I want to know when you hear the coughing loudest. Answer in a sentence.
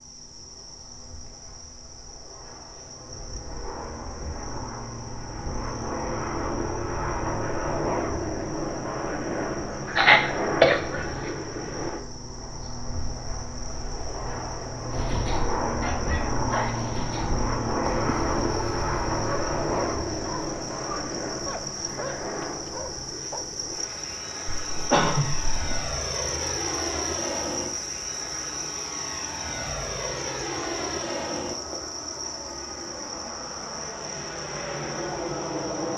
The loudest moment of the coughing is at 10 seconds.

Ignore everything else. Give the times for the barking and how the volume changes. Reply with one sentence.
The barking can be heard from 14.9 to 23.4 s, getting quieter.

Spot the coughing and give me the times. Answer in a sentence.
The coughing can be heard from 9.8 to 11.3 s and from 24.7 to 25.9 s.